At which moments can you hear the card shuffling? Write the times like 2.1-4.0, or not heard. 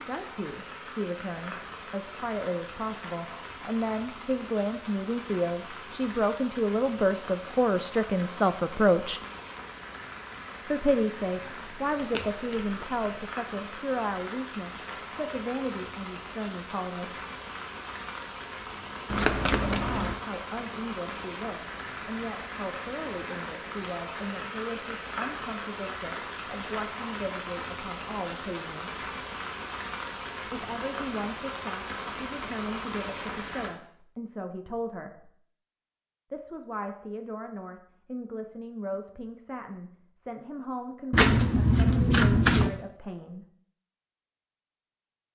11.3-13.1, 19.1-20.1, 41.1-42.8.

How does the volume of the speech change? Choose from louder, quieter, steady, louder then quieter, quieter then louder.
quieter.